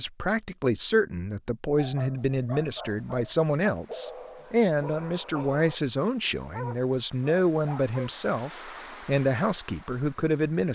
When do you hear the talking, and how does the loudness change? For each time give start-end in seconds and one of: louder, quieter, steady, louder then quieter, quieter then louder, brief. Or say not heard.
0.0-10.7 steady.